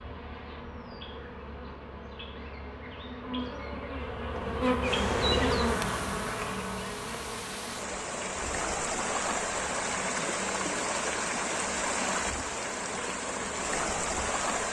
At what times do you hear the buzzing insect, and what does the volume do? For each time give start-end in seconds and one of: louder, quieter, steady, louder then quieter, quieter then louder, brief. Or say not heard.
0.0-14.6 louder then quieter.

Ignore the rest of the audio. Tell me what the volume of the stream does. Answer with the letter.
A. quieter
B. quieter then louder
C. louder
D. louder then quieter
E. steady
C.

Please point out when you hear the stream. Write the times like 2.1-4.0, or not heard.
4.8-14.6.